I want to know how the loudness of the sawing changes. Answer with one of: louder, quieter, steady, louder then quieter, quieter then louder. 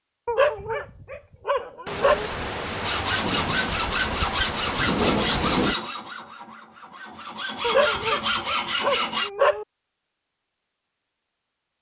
quieter then louder.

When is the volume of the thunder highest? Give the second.
5 s.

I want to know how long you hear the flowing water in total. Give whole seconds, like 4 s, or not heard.
not heard.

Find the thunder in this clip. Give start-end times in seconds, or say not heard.
1.9-5.8.